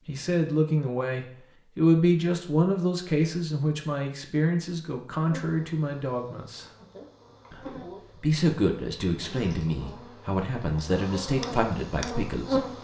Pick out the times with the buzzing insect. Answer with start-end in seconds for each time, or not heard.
5.2-12.8.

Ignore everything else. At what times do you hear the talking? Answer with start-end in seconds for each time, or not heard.
0.1-6.7, 7.5-12.6.